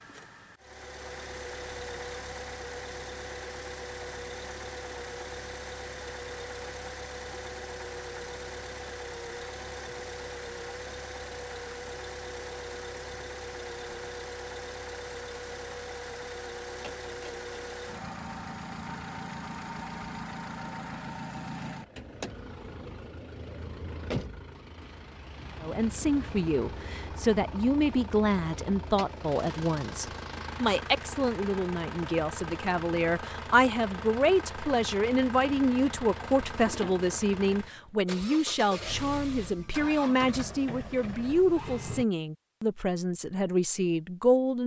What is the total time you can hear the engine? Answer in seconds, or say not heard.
42 s.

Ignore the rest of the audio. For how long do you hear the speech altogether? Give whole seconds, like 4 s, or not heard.
19 s.